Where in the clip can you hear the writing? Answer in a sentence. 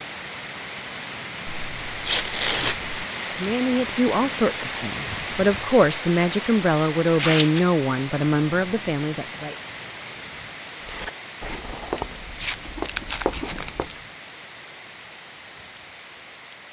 You can hear the writing from 10.8 to 13.9 s.